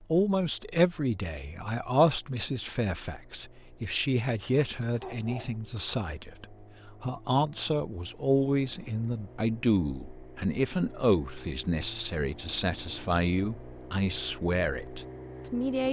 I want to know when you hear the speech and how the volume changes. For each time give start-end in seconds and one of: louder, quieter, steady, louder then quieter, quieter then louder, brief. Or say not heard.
0.1-15.8 steady.